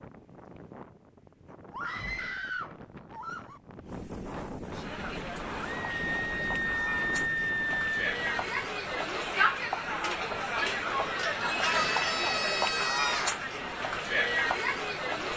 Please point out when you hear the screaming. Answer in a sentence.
The screaming can be heard from 1.7 to 3.6 s, from 5.8 to 8.0 s and from 11.6 to 13.4 s.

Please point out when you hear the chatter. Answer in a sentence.
You can hear the chatter from 4.7 to 15.3 s.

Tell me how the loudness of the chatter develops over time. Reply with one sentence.
The volume of the chatter goes up.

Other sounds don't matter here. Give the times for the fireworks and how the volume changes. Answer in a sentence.
The fireworks can't be heard in this clip.